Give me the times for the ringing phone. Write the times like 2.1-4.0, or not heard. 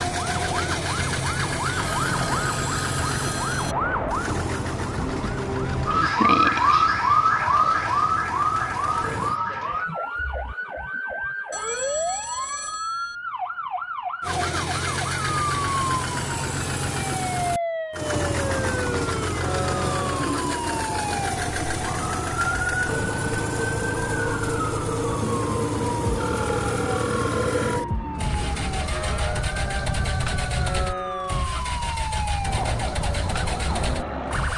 1.7-3.8, 11.5-13.2, 26.2-27.8.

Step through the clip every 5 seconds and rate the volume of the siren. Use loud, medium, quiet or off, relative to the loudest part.
medium, loud, medium, medium, medium, medium, medium.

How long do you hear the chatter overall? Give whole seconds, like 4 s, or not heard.
not heard.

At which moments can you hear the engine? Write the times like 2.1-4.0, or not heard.
0.0-9.4, 14.2-34.5.